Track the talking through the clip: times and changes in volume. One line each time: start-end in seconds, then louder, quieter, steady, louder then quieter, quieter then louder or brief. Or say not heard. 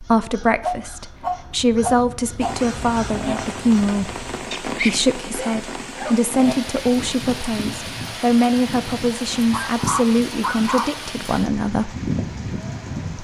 0.0-11.9 steady.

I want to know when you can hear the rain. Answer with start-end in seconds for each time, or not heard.
2.4-13.1.